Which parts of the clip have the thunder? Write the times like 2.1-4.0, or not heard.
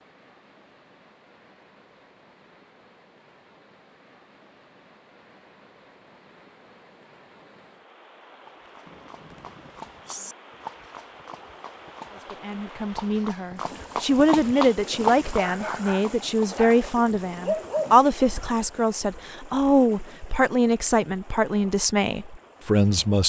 8.8-10.3.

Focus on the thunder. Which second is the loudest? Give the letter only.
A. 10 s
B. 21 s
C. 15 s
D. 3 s
A.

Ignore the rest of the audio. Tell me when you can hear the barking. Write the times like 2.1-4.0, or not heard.
15.3-17.9.